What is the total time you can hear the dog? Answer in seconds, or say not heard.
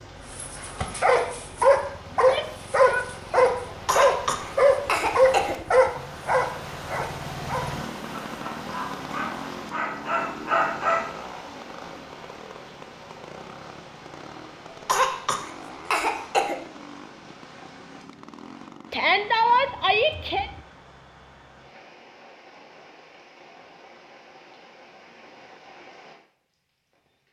11 s.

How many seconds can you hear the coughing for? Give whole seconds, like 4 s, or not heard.
4 s.